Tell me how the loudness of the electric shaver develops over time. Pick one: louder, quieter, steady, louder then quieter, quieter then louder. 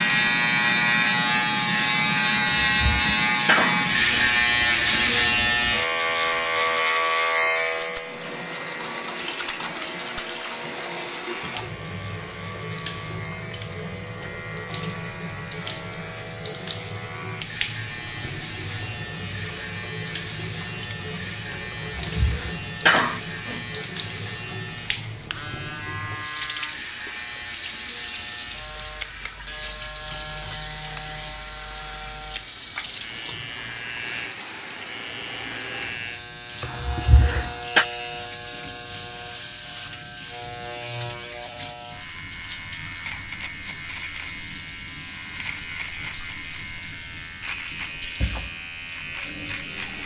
quieter.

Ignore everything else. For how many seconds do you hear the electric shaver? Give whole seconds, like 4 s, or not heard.
50 s.